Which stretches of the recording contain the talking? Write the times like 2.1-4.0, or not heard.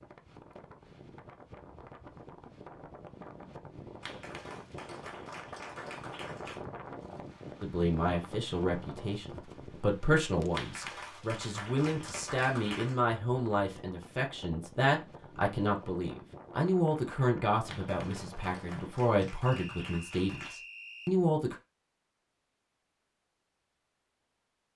7.6-21.6.